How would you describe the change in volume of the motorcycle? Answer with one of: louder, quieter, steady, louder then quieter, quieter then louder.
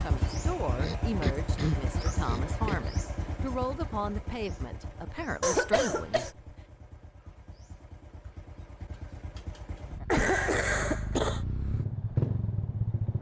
quieter then louder.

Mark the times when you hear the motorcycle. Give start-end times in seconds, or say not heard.
0.0-13.1.